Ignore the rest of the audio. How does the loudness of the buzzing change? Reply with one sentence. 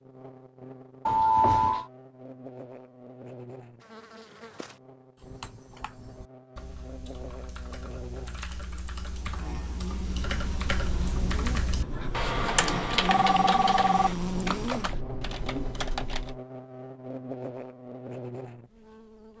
The loudness of the buzzing goes up, then down.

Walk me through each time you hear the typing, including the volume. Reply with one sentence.
You can hear the typing from 5.2 to 16.4 s, getting louder then quieter.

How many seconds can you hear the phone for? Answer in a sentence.
The phone can be heard for 3 seconds in total.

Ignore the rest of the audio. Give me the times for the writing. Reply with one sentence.
The writing can be heard from 9.9 to 16.4 s.